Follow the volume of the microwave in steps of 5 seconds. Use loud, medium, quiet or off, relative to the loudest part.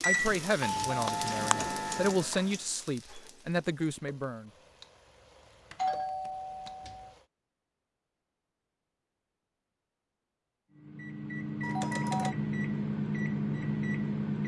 loud, off, loud.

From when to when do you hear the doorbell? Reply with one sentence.
The doorbell can be heard from 0.6 to 2.1 s, from 5.7 to 7.2 s and from 11.6 to 12.3 s.